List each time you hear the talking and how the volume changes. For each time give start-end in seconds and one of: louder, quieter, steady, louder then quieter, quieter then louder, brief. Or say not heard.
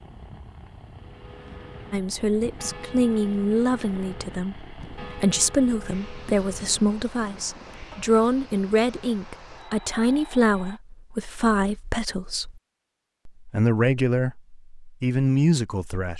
1.9-12.6 steady
13.4-16.1 brief.